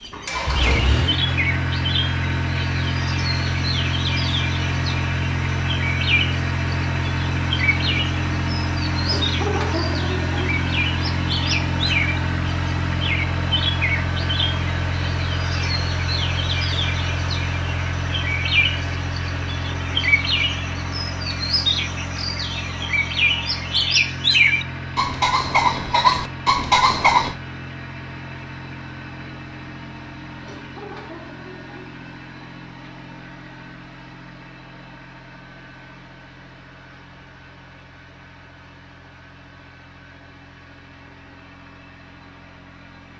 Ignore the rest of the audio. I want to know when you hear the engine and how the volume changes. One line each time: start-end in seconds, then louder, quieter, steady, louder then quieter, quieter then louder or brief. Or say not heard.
0.0-43.1 quieter.